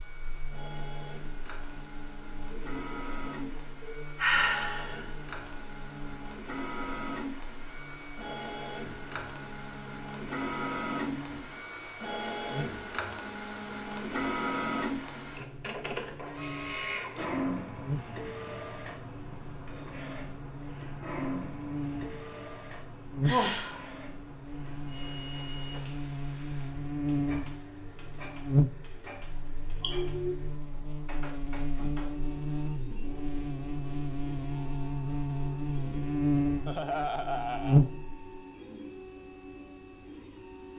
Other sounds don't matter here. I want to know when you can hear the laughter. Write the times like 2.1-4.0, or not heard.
36.6-37.9.